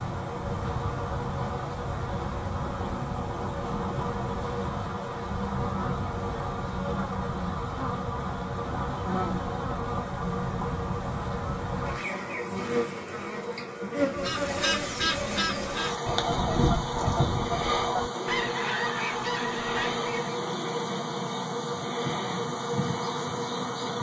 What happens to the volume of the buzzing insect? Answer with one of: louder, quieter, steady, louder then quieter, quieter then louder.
steady.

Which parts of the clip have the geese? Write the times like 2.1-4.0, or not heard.
14.1-20.4.